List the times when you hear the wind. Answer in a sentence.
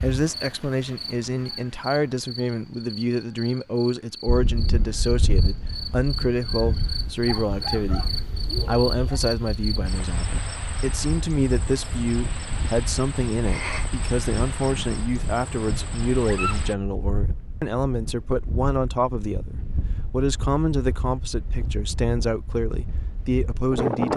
The wind can be heard from 4.2 to 24.1 s.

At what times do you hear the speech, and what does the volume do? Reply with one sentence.
The speech can be heard from 0.0 to 24.1 s, at a steady volume.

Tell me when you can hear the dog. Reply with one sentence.
You can hear the dog from 7.2 to 9.2 s and from 16.2 to 16.6 s.